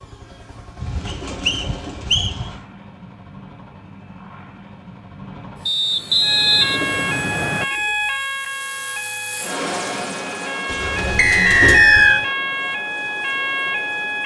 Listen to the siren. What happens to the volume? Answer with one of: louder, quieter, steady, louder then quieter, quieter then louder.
quieter then louder.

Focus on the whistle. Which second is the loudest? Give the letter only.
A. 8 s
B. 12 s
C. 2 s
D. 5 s
B.